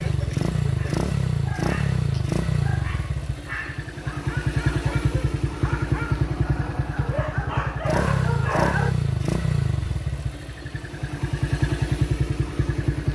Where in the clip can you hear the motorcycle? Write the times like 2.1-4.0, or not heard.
0.0-13.0.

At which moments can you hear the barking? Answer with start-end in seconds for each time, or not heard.
0.0-8.9.